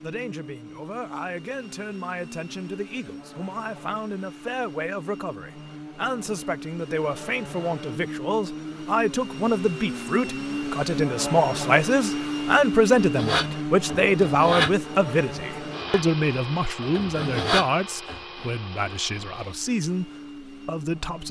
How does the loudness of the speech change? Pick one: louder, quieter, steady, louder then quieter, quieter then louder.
louder then quieter.